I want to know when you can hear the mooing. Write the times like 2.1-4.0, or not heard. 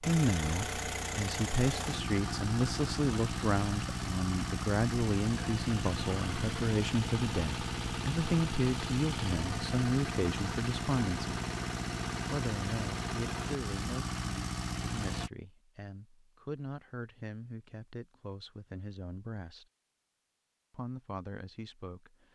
not heard.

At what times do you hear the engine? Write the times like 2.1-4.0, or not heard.
0.0-15.3.